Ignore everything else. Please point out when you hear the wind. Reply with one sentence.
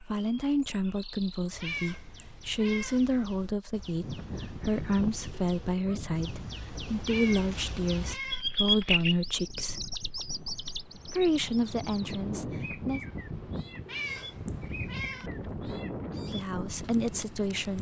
You can hear the wind from 4.0 to 17.7 s.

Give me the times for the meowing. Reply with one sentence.
The meowing can be heard from 1.6 to 3.0 s, from 7.0 to 8.4 s and from 13.8 to 15.3 s.